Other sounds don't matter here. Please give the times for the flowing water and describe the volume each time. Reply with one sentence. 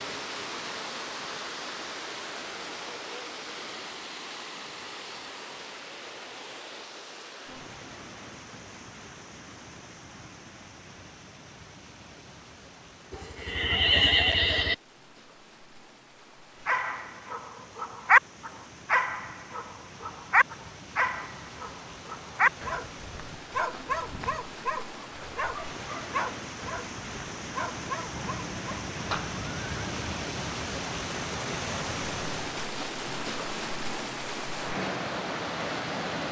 You can hear the flowing water from 0.0 to 36.2 s, getting quieter then louder.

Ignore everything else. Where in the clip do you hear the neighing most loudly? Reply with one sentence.
The loudest moment of the neighing is at 14 seconds.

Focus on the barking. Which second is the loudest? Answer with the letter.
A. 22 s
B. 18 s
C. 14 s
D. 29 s
B.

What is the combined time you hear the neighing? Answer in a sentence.
The neighing can be heard for 4 seconds in total.